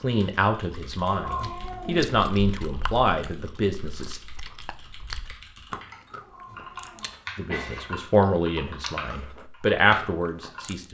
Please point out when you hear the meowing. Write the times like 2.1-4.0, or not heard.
1.1-2.1, 6.2-7.9.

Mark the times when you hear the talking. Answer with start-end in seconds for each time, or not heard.
0.0-4.2, 7.3-10.8.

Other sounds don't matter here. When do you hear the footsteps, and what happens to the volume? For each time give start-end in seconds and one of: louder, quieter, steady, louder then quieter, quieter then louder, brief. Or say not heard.
not heard.